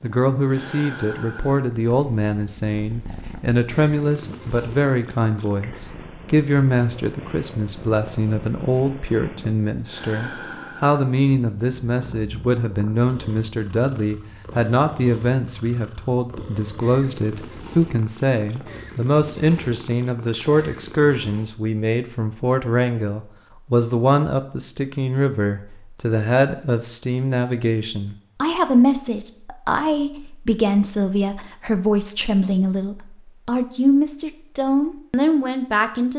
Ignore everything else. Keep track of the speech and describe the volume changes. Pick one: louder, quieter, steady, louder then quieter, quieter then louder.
steady.